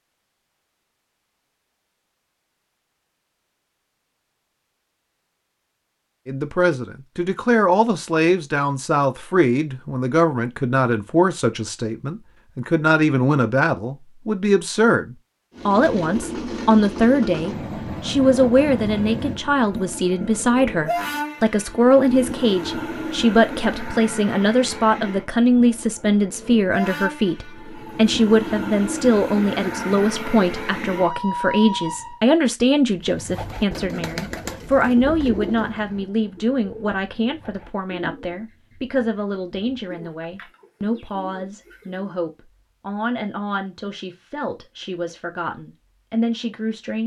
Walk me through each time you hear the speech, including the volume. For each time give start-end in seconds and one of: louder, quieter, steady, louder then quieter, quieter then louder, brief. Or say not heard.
6.2-47.0 quieter.